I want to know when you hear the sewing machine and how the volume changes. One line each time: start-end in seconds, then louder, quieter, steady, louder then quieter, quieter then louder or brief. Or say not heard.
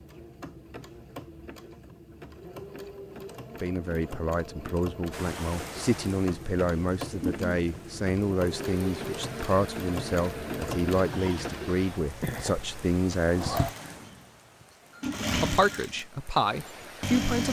0.0-17.4 louder.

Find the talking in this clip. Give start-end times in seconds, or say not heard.
3.6-13.7, 15.3-17.4.